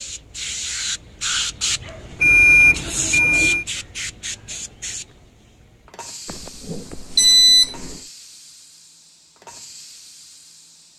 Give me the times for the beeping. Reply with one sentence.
The beeping can be heard from 2.2 to 3.6 s and from 6.2 to 8.0 s.